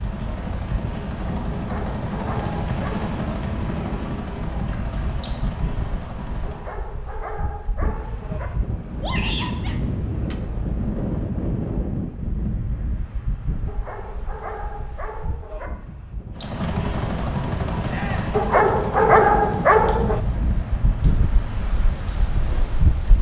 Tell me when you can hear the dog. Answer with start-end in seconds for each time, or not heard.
1.5-3.1, 6.5-8.5, 13.7-15.7, 18.3-20.2.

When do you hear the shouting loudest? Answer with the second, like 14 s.
9 s.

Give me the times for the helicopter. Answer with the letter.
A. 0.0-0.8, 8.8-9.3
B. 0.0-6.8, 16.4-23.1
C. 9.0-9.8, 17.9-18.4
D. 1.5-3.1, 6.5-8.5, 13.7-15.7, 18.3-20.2
B.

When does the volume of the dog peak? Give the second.
19 s.